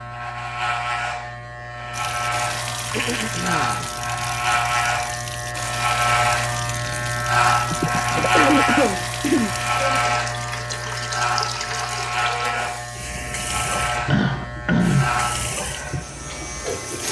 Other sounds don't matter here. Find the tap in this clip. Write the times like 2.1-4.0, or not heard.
1.9-17.0.